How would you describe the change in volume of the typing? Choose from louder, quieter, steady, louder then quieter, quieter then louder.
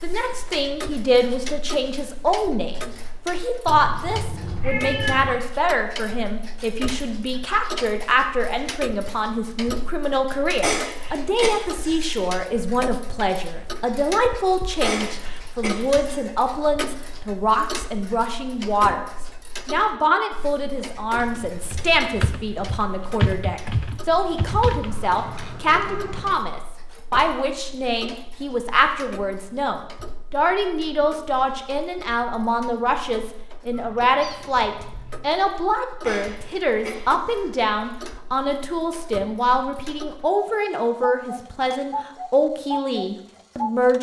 louder then quieter.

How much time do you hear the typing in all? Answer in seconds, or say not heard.
5 s.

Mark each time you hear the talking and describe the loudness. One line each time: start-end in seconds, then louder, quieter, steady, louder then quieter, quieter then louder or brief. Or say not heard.
0.0-19.1 steady
19.6-43.9 steady.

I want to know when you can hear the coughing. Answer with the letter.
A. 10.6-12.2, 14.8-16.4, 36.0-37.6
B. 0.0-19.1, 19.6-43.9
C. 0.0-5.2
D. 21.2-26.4
A.